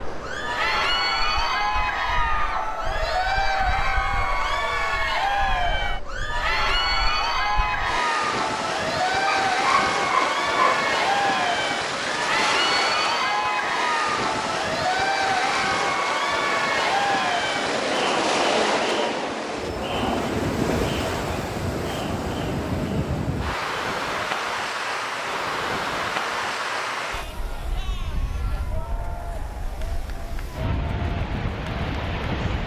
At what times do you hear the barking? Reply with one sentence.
The barking can be heard from 9.2 to 10.9 s.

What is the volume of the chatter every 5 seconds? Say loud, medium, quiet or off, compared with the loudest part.
loud, loud, loud, loud, medium, quiet, quiet.